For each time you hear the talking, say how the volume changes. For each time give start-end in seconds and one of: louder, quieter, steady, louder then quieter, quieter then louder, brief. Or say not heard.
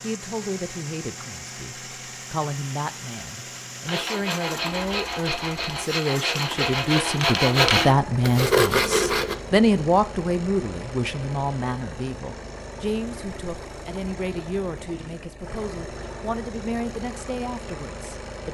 0.0-18.4 louder then quieter.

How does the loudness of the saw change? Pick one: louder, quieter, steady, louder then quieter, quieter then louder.
louder.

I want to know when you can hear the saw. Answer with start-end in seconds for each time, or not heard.
3.9-9.3.